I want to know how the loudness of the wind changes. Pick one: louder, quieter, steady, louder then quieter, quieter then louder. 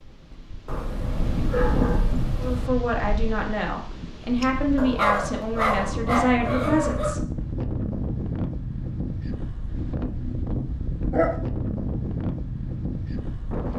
quieter then louder.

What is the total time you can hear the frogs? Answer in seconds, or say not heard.
not heard.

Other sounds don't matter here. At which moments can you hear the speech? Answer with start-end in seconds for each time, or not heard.
2.4-7.2.